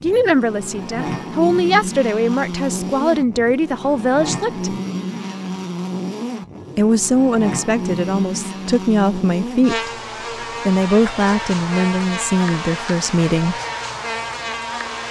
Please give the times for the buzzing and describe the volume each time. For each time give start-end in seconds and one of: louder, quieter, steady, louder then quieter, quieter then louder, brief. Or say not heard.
0.0-15.0 steady.